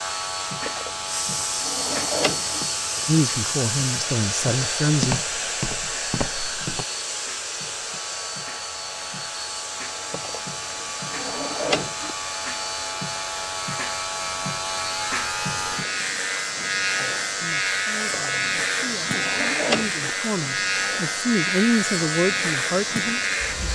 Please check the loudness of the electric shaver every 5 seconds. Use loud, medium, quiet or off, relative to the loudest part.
medium, quiet, medium, loud, loud.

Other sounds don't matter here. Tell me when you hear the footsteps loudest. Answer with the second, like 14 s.
5 s.